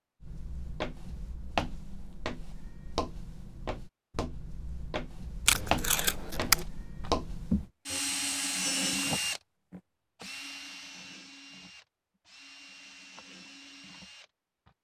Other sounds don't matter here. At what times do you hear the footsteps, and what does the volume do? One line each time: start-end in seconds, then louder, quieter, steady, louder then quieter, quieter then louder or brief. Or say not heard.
0.2-7.7 quieter then louder.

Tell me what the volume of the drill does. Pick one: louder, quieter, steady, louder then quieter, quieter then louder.
quieter.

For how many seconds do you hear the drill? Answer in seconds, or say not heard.
8 s.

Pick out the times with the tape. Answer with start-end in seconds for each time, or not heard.
5.5-6.7.